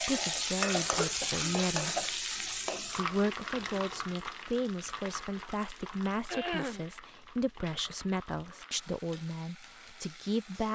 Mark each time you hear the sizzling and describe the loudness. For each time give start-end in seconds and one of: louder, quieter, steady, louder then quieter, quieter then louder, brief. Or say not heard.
0.0-10.7 quieter.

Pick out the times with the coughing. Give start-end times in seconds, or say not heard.
0.3-2.1, 6.2-6.8.